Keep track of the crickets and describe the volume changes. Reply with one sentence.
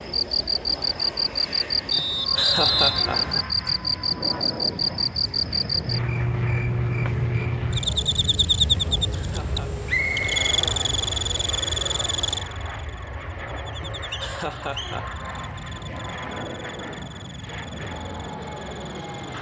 The loudness of the crickets goes down.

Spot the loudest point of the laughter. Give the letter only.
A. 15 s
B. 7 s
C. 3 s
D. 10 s
C.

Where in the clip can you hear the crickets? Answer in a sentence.
The crickets can be heard from 0.1 to 19.3 s.